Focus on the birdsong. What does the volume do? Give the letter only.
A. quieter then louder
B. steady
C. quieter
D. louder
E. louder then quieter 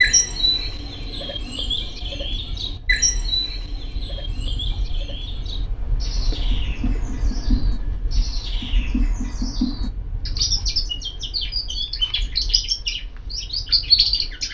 A.